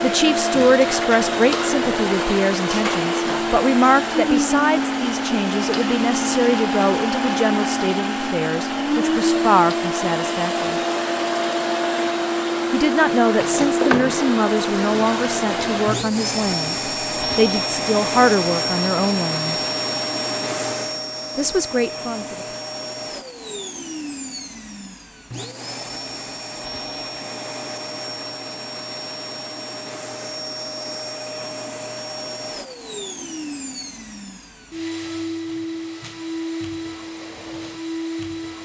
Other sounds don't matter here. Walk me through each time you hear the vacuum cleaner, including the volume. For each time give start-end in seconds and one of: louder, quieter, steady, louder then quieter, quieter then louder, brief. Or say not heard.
0.0-38.6 quieter.